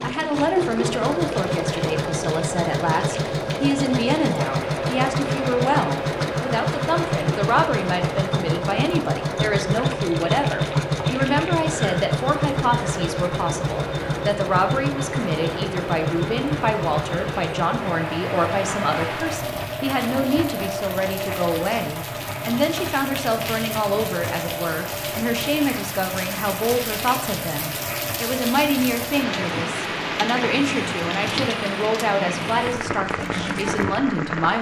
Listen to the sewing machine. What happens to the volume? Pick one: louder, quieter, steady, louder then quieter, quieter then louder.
quieter.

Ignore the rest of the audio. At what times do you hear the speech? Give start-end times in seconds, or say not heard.
0.0-34.5.